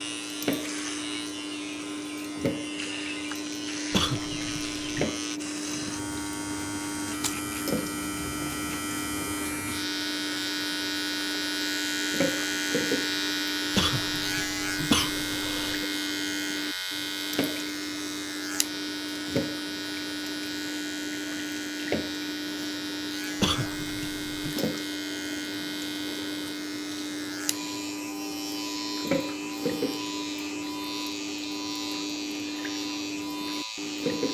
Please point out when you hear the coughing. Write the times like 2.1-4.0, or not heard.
3.9-5.1, 13.7-15.8, 23.4-24.6.